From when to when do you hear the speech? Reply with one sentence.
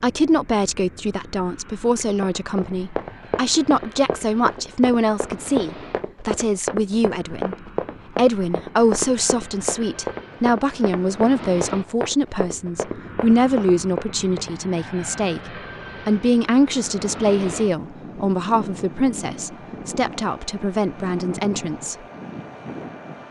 The speech can be heard from 0.0 to 7.5 s and from 8.2 to 21.9 s.